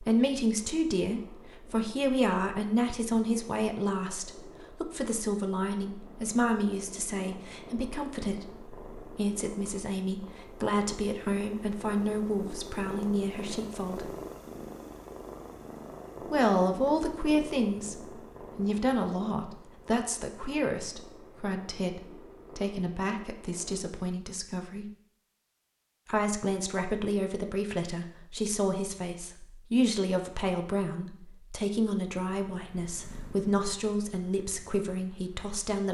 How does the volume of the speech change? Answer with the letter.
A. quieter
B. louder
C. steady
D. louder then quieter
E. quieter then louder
C.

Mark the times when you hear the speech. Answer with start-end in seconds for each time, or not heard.
0.0-14.1, 16.3-24.9, 26.1-35.8.